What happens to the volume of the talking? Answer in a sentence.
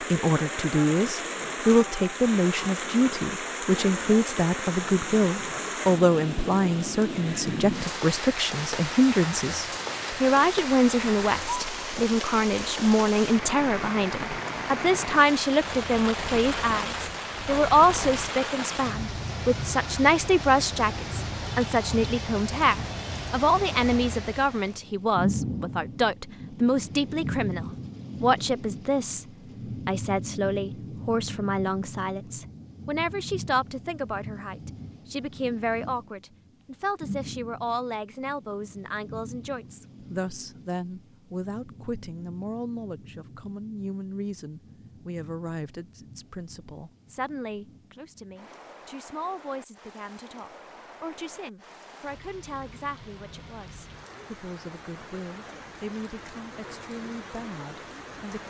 The volume of the talking goes down.